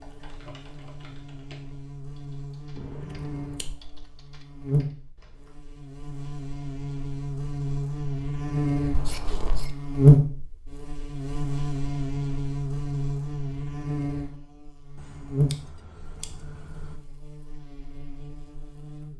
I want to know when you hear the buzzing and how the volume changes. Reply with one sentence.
You can hear the buzzing from 0.0 to 19.1 s, getting louder then quieter.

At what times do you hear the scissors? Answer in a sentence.
The scissors can be heard from 2.8 to 3.6 s, from 8.9 to 9.8 s and from 15.0 to 16.9 s.